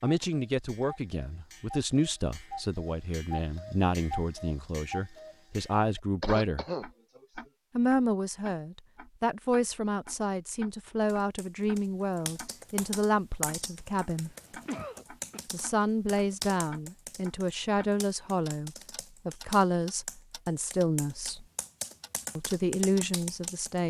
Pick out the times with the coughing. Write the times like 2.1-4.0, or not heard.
6.2-7.2, 14.1-15.4.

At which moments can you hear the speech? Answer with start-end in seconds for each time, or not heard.
0.0-6.7, 7.8-14.3, 15.5-21.4, 22.4-23.8.